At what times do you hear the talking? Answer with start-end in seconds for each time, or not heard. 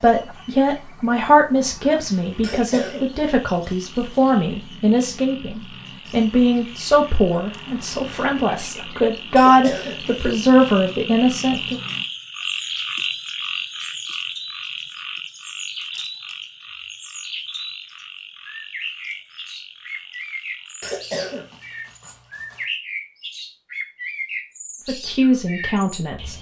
0.0-11.8, 24.9-26.3.